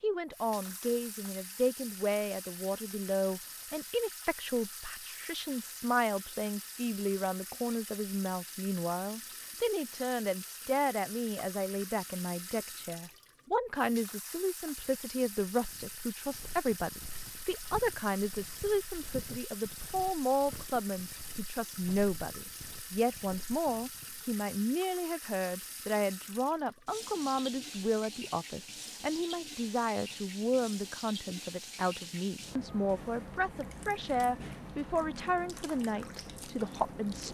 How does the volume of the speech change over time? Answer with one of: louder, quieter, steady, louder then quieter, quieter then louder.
steady.